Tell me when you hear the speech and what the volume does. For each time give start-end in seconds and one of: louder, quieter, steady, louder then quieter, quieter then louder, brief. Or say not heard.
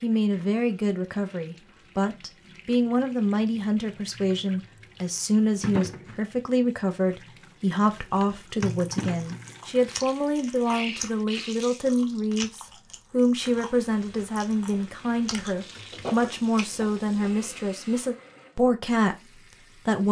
0.0-20.0 steady.